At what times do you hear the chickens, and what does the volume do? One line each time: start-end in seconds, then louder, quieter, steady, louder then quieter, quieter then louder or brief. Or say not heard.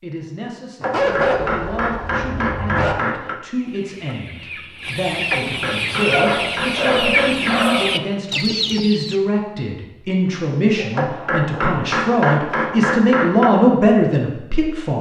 3.5-9.2 louder.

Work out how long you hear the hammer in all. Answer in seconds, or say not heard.
8 s.